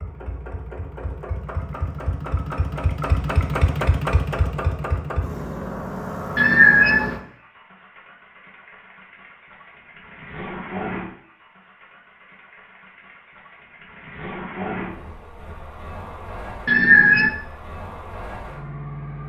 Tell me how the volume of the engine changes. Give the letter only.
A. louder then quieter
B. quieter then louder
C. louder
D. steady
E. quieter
E.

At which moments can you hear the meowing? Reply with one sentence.
The meowing can be heard from 6.3 to 7.2 s and from 16.6 to 17.4 s.